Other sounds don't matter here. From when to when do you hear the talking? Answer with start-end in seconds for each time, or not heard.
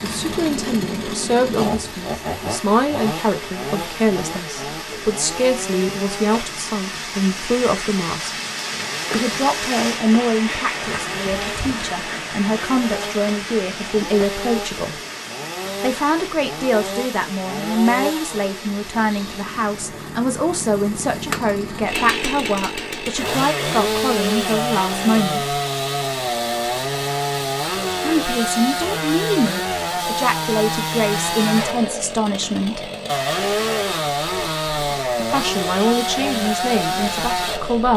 0.0-8.3, 9.1-14.9, 15.8-25.6, 28.0-32.8, 35.1-37.9.